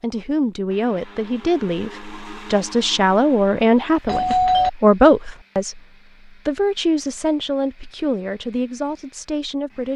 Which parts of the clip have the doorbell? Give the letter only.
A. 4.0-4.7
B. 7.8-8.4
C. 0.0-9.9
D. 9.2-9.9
A.